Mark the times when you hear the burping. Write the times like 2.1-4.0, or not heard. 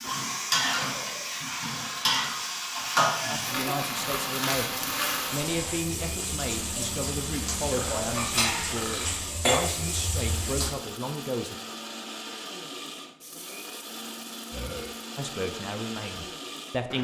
0.8-2.5, 7.7-9.2, 14.5-14.9.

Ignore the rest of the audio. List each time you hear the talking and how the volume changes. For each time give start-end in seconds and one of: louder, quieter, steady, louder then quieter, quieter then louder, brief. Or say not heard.
3.2-11.6 steady
15.2-16.9 brief.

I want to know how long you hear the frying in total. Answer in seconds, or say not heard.
11 s.